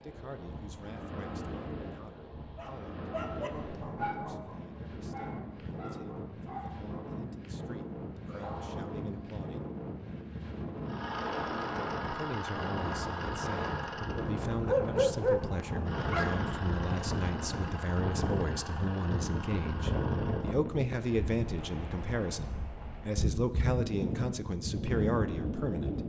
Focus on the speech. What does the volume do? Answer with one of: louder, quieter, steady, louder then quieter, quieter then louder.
louder.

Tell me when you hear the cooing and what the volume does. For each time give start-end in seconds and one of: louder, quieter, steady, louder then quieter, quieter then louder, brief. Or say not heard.
not heard.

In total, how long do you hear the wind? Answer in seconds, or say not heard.
26 s.